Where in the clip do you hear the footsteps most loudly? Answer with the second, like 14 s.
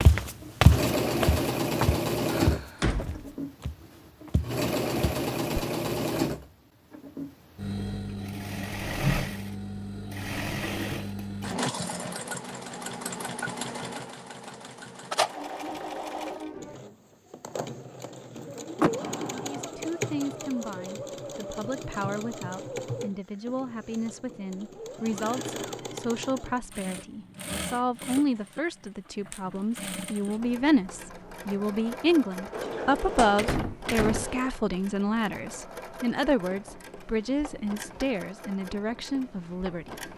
1 s.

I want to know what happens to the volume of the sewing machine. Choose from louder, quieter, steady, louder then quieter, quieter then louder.
quieter.